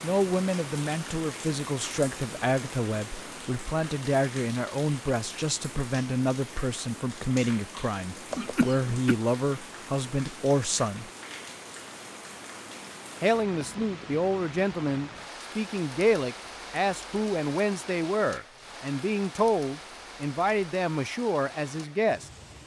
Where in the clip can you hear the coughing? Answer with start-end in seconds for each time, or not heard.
8.3-9.2.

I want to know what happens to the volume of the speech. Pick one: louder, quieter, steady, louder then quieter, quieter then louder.
steady.